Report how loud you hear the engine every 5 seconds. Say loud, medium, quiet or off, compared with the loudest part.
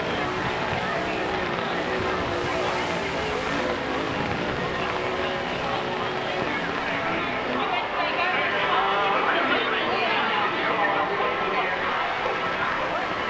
loud, loud, medium.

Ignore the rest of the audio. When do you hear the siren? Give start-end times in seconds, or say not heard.
not heard.